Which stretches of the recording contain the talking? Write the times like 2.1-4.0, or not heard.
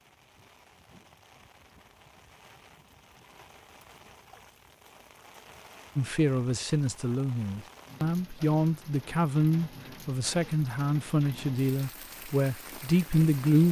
6.0-13.6.